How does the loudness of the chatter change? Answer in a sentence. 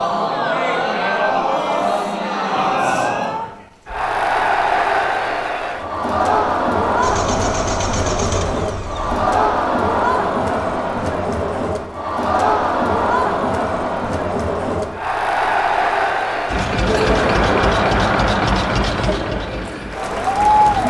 The loudness of the chatter stays about the same.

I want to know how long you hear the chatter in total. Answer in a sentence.
The chatter can be heard for 21 seconds in total.